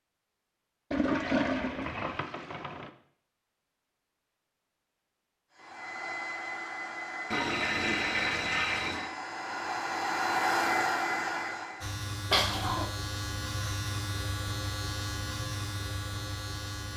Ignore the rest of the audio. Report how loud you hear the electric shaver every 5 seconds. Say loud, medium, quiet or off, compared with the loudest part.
off, off, loud, loud.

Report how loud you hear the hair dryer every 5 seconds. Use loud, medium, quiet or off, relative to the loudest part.
off, medium, loud, off.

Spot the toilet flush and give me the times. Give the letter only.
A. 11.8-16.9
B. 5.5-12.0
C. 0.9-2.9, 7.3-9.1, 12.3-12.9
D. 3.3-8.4
C.